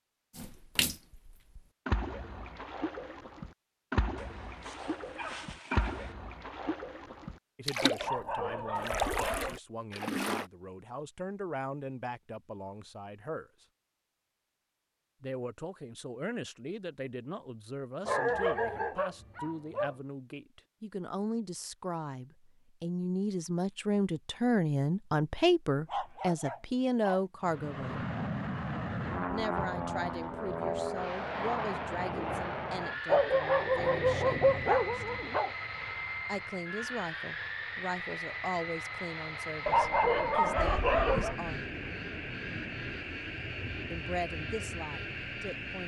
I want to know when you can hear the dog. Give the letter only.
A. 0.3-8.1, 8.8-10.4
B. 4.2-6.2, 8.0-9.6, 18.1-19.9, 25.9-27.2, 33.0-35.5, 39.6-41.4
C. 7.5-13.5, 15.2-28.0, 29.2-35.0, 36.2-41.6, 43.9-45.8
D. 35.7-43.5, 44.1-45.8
B.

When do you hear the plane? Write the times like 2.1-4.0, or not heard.
27.4-45.8.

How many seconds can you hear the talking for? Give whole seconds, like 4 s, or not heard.
32 s.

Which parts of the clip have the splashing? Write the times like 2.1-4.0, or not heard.
0.3-8.1, 8.8-10.4.